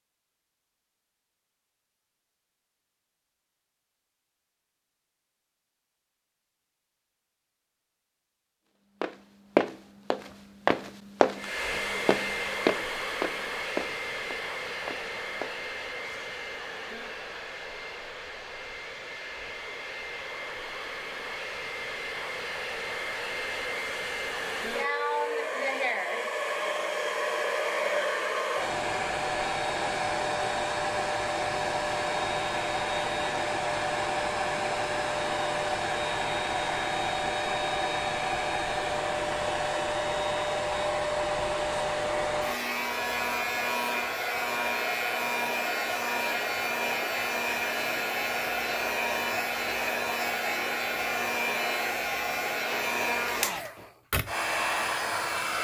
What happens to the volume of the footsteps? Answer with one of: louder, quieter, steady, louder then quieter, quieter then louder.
quieter.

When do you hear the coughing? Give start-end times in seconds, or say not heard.
not heard.